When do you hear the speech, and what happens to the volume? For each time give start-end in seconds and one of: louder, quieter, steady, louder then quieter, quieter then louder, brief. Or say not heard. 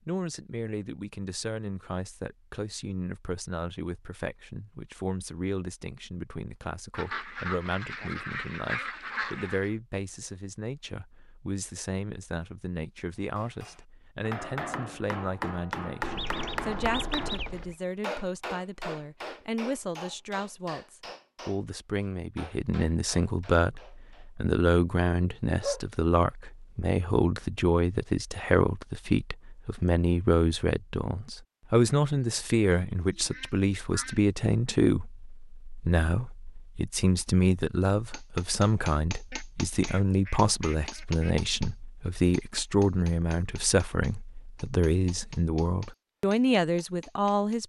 0.1-47.6 louder.